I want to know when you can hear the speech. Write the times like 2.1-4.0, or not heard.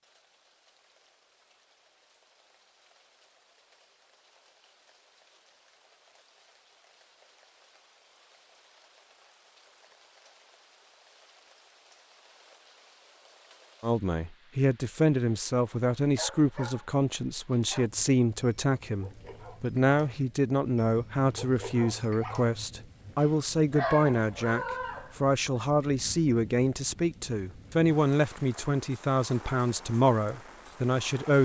13.8-31.4.